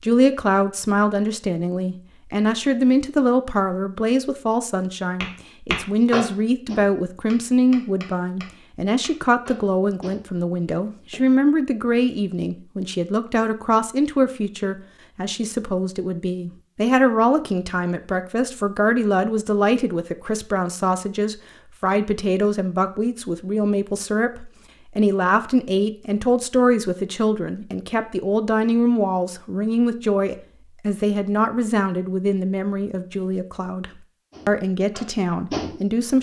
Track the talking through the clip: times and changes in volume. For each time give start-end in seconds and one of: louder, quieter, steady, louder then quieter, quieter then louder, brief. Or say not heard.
0.0-36.1 steady.